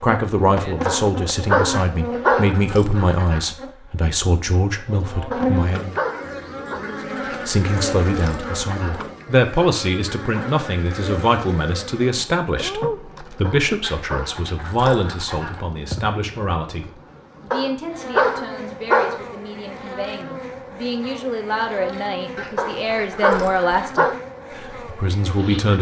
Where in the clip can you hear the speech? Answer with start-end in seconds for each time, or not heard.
0.0-6.0, 7.5-25.7.